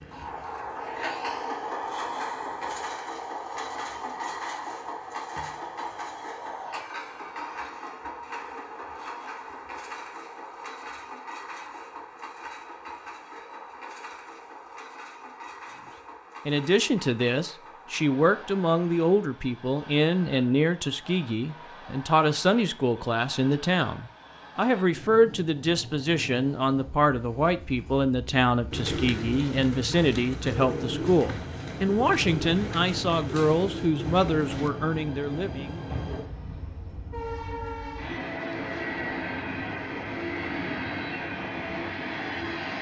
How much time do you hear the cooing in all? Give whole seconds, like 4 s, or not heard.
6 s.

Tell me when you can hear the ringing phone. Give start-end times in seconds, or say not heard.
not heard.